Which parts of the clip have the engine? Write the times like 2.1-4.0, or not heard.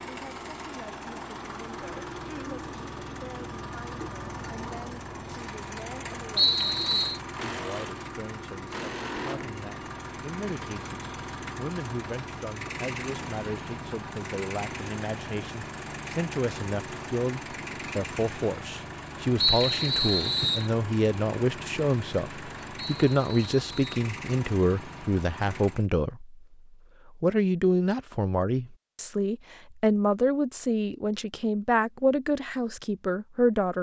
0.0-25.9.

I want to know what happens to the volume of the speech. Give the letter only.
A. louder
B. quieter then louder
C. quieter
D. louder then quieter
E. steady
A.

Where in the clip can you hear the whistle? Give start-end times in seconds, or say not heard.
6.3-7.2, 19.4-20.7, 22.8-24.1.